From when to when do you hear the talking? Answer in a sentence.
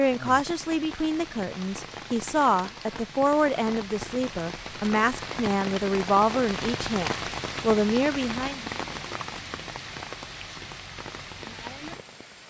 You can hear the talking from 0.0 to 8.6 s.